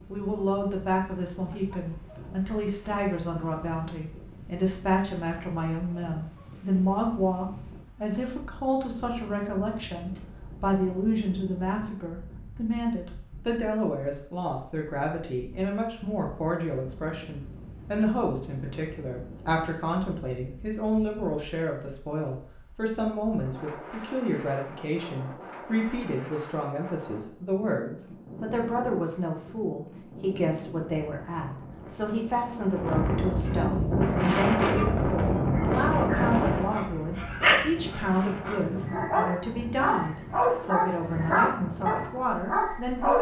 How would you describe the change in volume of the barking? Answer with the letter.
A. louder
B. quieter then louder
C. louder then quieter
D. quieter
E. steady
A.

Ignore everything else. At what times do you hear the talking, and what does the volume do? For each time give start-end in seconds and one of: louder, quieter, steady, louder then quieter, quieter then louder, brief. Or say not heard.
0.1-43.1 steady.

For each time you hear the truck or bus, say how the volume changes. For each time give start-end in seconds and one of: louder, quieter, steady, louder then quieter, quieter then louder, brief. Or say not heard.
not heard.